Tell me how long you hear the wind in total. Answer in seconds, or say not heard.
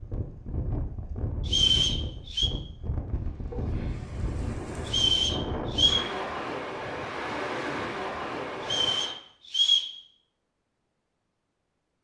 9 s.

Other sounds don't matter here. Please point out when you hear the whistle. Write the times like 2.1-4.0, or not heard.
1.4-2.5, 4.8-6.0, 8.6-9.9.